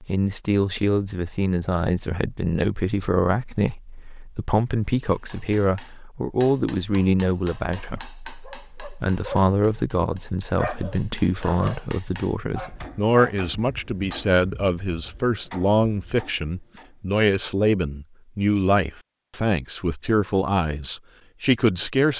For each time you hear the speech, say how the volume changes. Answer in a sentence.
The speech can be heard from 0.0 to 22.1 s, at a steady volume.